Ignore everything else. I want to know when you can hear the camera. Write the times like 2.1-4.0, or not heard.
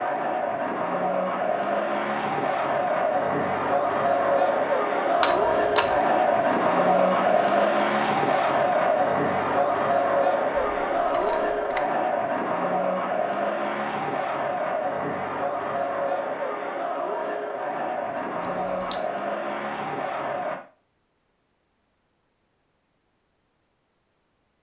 5.2-6.0, 11.1-11.8, 18.1-19.0.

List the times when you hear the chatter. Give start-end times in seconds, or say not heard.
0.0-20.6.